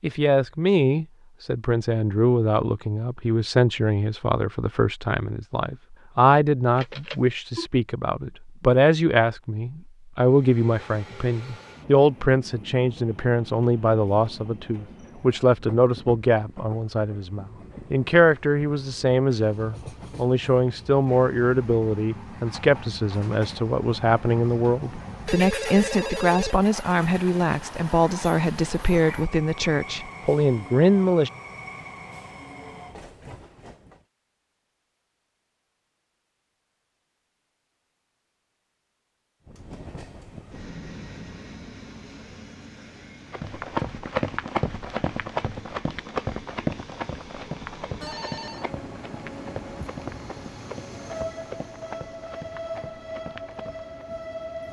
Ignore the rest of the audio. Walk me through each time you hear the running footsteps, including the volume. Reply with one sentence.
The running footsteps can be heard from 43.3 to 53.9 s, getting quieter.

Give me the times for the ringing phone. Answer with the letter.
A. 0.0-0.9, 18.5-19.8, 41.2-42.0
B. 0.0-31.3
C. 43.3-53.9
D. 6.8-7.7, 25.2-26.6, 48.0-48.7
D.